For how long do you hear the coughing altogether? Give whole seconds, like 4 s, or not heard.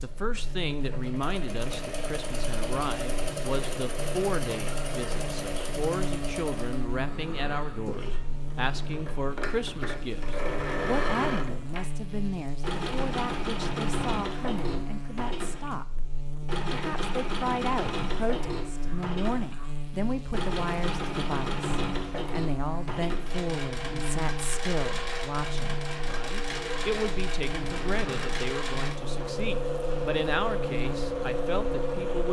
3 s.